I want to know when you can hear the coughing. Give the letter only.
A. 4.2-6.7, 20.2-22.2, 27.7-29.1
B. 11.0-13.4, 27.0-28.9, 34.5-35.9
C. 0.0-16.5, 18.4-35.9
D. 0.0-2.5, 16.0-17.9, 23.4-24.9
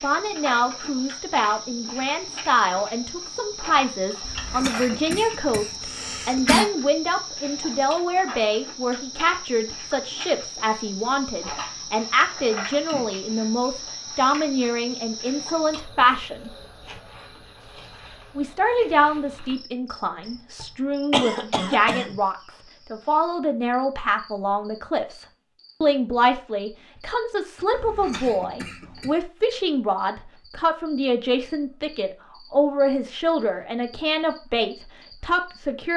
A.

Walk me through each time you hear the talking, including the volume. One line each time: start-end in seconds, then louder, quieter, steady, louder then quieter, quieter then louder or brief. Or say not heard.
0.0-16.5 steady
18.4-35.9 steady.